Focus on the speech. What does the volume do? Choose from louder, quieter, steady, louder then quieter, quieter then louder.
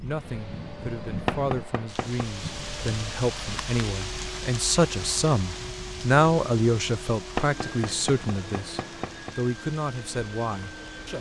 louder then quieter.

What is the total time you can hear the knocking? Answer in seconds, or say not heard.
3 s.